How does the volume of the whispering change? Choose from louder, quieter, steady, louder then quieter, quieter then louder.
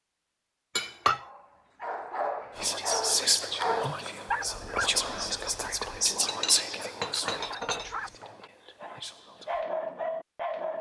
quieter.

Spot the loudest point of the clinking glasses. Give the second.
1 s.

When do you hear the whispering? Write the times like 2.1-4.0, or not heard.
2.5-9.7.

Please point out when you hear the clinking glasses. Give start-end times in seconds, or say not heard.
0.8-1.2, 6.2-8.5.